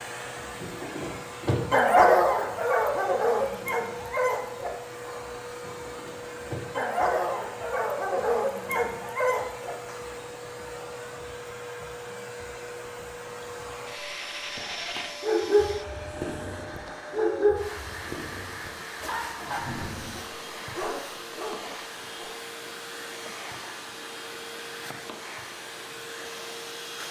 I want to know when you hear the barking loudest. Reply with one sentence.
The volume of the barking peaks at 2 seconds.